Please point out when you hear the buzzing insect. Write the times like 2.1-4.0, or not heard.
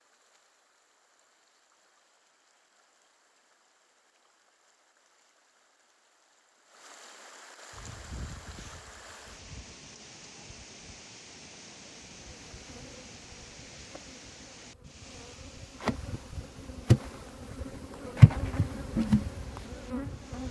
7.7-20.4.